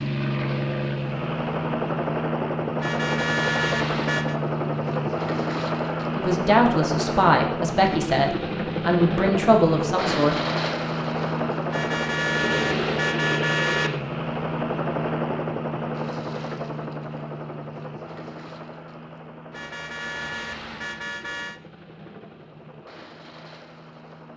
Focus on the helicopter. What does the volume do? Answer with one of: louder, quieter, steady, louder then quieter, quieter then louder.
quieter.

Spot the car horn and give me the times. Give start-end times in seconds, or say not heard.
2.8-4.4, 11.7-13.9, 19.5-21.6.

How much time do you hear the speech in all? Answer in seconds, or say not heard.
4 s.